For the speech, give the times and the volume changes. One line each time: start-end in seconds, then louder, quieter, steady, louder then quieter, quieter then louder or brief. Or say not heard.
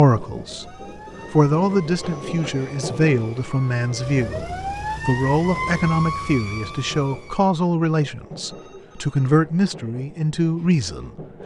0.0-0.7 brief
1.3-11.1 steady.